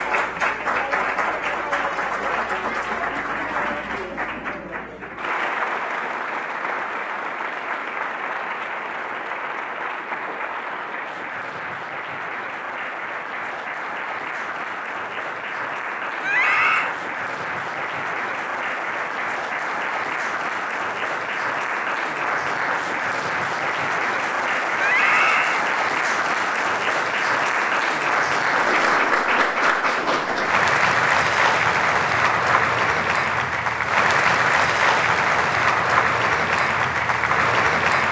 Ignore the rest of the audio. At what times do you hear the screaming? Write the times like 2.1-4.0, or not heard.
16.2-16.9, 24.8-25.6.